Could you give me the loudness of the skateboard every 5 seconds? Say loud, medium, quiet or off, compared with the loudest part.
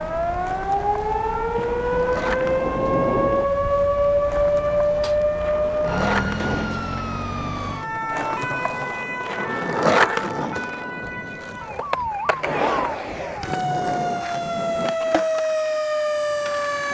medium, loud, loud, medium.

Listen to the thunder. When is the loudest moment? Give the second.
3 s.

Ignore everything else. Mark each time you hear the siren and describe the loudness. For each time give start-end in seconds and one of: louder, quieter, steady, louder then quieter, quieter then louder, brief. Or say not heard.
0.0-16.8 quieter then louder.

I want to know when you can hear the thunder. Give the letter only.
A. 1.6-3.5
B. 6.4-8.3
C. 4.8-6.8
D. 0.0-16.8
A.